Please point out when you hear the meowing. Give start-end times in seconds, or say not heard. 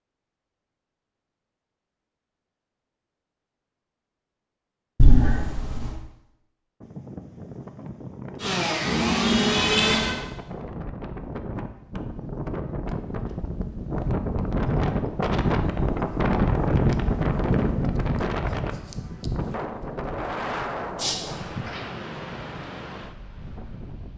5.0-6.0, 8.8-10.2, 20.9-21.8.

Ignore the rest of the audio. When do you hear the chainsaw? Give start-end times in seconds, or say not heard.
8.3-10.1.